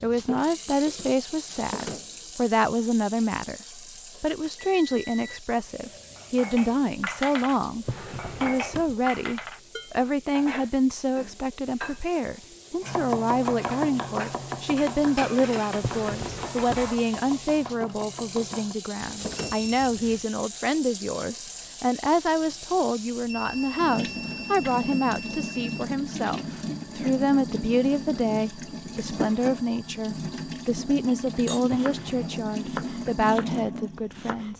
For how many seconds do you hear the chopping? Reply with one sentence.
The chopping can be heard for 9 seconds in total.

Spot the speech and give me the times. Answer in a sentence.
The speech can be heard from 0.0 to 34.5 s.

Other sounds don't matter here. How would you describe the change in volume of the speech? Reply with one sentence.
The loudness of the speech stays about the same.